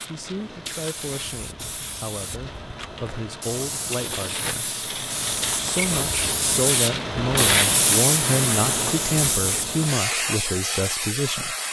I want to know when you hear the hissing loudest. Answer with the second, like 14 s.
8 s.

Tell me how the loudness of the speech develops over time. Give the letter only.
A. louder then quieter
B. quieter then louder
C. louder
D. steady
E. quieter
C.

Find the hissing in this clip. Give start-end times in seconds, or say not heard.
0.0-11.6.